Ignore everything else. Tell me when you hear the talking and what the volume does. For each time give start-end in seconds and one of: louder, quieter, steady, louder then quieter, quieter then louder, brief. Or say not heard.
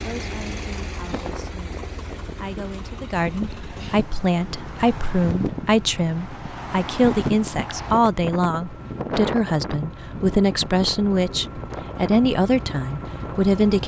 0.0-13.8 louder.